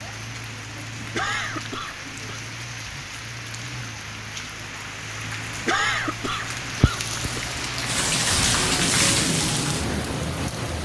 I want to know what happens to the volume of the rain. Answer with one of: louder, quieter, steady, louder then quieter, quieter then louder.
louder.